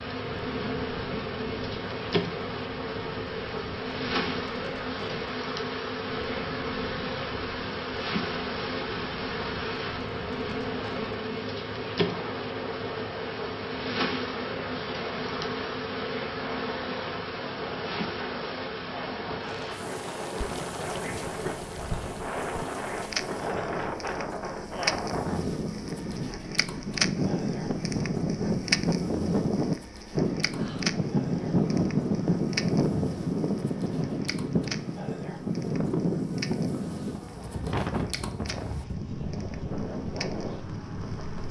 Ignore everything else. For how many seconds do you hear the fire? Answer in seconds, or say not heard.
22 s.